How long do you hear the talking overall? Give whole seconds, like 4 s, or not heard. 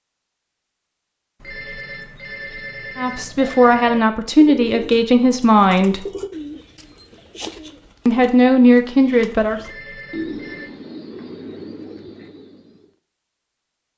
5 s.